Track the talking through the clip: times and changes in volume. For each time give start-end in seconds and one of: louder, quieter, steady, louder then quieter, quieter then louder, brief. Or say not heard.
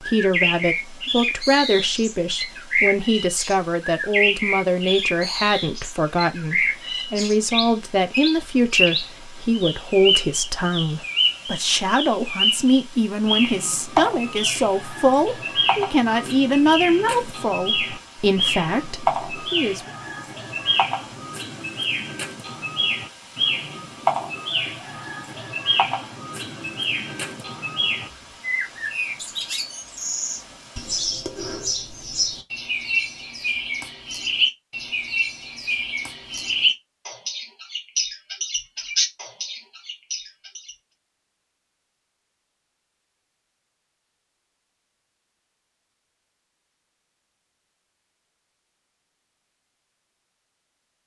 0.0-19.9 steady.